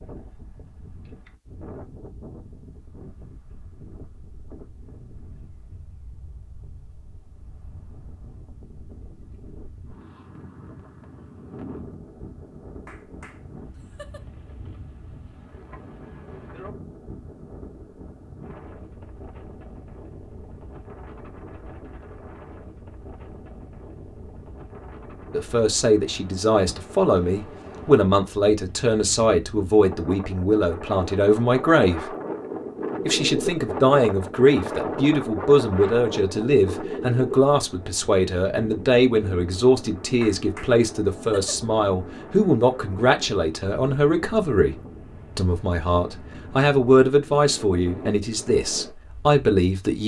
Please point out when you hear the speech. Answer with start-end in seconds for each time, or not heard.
25.3-32.1, 33.0-44.8, 45.4-50.0.